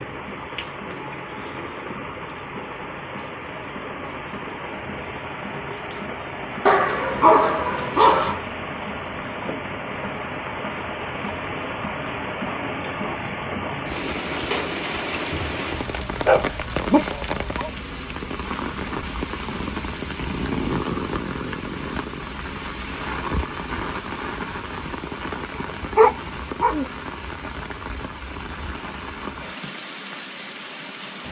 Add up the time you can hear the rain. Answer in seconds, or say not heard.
31 s.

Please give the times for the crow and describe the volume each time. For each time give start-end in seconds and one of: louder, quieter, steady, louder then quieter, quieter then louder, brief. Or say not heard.
not heard.